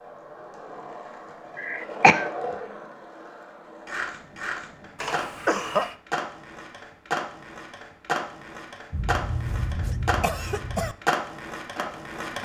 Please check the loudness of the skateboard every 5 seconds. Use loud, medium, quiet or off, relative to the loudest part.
medium, loud, loud.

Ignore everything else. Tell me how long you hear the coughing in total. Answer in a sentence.
You can hear the coughing for 4 seconds altogether.